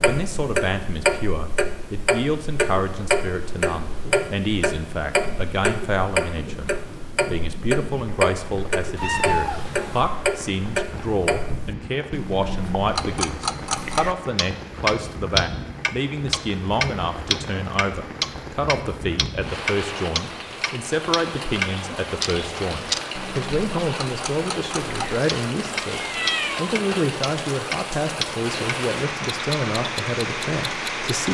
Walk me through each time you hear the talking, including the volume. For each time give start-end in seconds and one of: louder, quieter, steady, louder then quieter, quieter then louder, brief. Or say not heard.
0.0-31.2 steady.